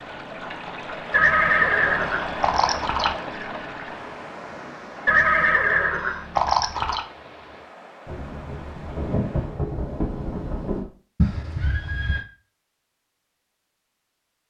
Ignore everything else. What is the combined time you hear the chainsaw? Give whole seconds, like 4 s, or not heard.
not heard.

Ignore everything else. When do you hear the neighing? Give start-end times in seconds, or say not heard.
1.1-3.1, 5.0-7.0, 11.2-12.2.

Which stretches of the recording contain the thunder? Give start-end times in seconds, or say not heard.
8.1-10.8.